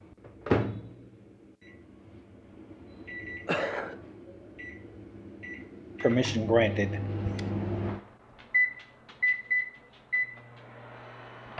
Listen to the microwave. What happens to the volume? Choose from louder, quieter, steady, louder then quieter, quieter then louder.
quieter then louder.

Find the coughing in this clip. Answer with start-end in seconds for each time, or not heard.
3.5-4.0, 6.0-7.4.